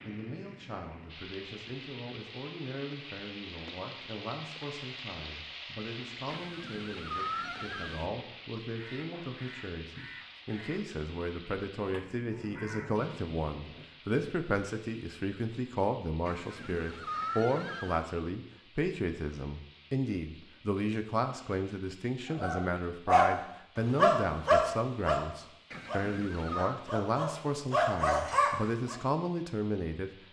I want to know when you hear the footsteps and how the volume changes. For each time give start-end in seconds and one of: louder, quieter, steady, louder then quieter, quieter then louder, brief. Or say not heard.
not heard.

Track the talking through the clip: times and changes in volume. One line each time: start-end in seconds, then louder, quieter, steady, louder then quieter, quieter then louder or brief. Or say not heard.
0.1-30.1 louder.